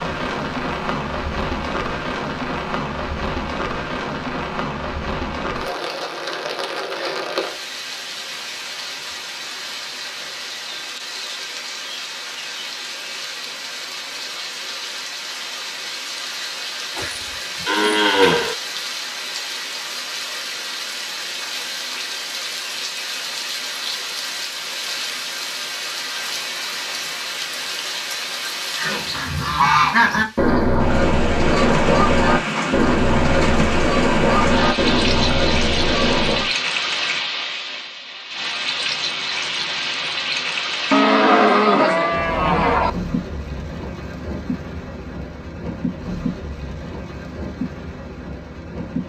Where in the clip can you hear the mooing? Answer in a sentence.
The mooing can be heard from 16.9 to 18.6 s and from 40.9 to 42.9 s.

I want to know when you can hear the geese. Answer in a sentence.
The geese can be heard from 28.8 to 36.5 s.